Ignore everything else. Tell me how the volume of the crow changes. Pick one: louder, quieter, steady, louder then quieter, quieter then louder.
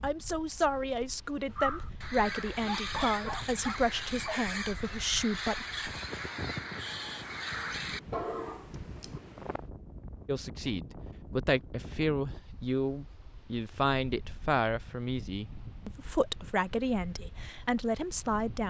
steady.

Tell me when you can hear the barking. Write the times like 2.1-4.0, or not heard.
2.6-4.6.